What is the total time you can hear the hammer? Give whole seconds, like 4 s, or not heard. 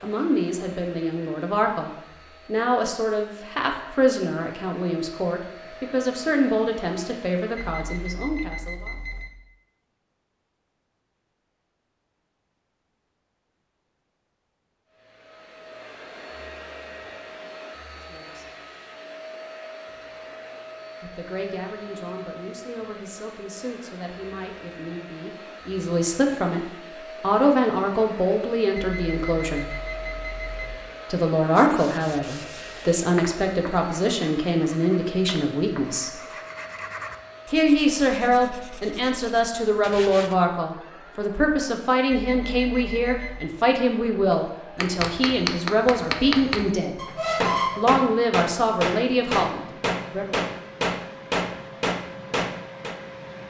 9 s.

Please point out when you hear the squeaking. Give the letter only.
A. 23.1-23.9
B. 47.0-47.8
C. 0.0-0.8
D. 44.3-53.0
B.